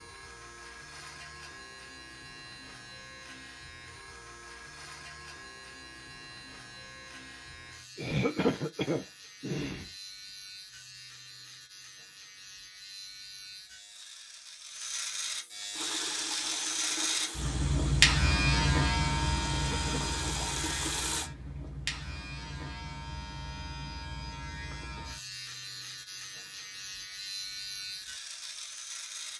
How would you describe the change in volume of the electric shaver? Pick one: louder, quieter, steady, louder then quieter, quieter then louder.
louder then quieter.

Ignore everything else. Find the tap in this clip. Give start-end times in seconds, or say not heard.
15.7-21.3.